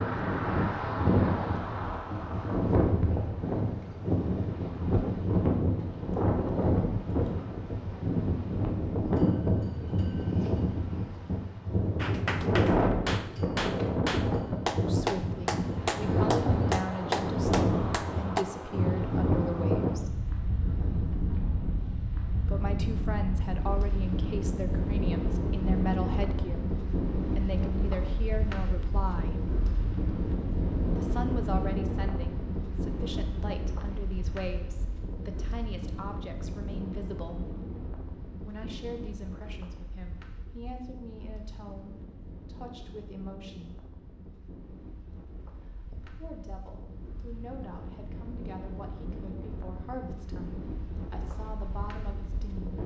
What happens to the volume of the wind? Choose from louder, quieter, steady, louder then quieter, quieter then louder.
quieter.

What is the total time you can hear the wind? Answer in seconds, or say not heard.
53 s.